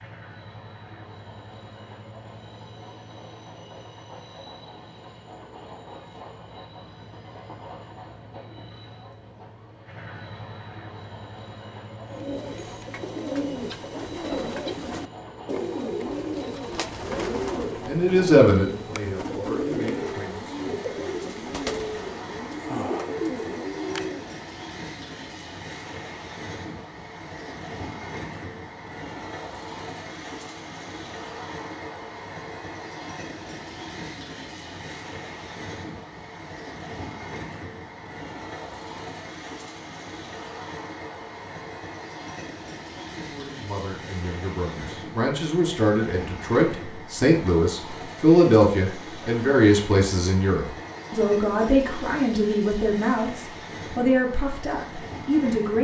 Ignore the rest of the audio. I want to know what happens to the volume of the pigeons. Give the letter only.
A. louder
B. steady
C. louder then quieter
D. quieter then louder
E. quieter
B.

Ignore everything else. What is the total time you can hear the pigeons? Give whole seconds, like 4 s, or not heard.
12 s.